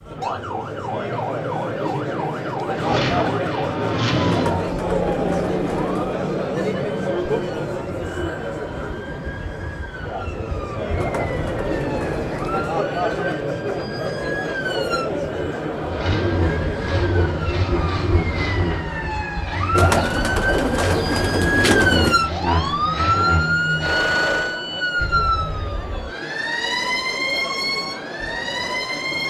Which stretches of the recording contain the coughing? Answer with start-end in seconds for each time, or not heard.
not heard.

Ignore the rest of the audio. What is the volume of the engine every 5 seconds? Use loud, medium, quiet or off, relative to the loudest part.
loud, off, off, loud, loud, off.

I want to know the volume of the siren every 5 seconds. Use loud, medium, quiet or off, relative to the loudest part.
medium, medium, medium, medium, loud, loud.